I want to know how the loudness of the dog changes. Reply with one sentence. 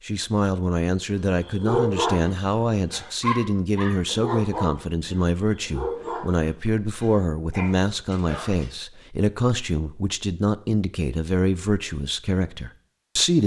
The volume of the dog goes down.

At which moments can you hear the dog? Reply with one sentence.
You can hear the dog from 1.2 to 8.7 s.